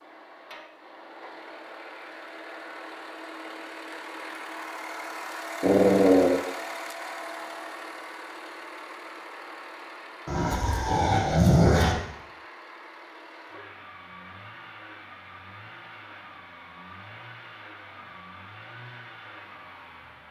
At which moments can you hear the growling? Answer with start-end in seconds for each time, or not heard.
5.6-6.4, 10.2-11.9.